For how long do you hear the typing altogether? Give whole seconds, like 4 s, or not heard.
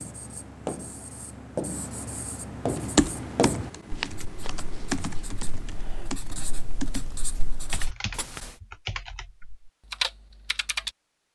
8 s.